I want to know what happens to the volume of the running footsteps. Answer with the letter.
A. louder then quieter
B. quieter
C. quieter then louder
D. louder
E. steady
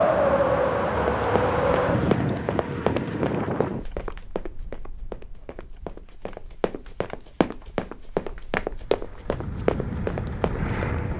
C.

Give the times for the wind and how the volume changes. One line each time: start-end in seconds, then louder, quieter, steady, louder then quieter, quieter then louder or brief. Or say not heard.
0.0-11.1 quieter then louder.